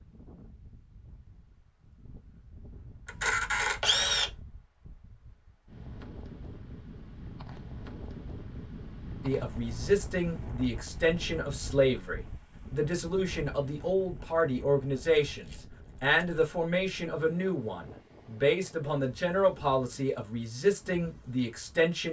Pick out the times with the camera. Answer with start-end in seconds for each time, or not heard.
3.0-4.3, 15.2-16.2.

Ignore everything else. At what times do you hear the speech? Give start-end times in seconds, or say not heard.
9.2-22.0.